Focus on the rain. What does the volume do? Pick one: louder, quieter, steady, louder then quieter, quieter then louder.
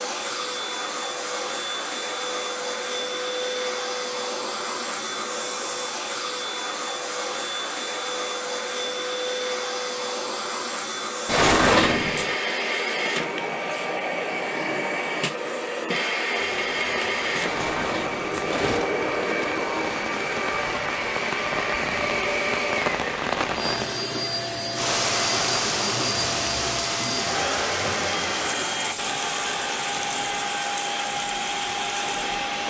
louder then quieter.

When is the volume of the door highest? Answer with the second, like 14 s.
12 s.